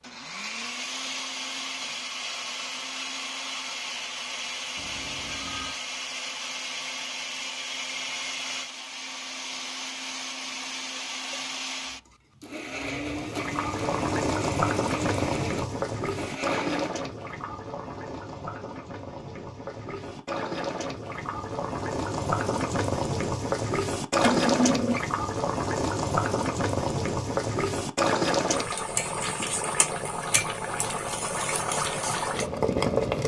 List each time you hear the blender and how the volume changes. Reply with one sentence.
The blender can be heard from 0.0 to 16.9 s, at a steady volume.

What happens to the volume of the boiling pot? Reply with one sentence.
The volume of the boiling pot goes down, then up.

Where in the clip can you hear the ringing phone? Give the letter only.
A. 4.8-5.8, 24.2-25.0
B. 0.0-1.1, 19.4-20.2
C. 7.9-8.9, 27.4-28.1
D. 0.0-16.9
A.